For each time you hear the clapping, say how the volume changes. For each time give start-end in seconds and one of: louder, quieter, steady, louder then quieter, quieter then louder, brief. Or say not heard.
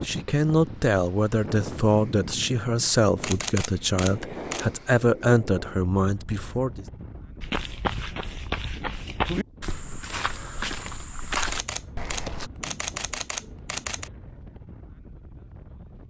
not heard.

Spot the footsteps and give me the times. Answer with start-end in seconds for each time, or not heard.
7.4-12.5.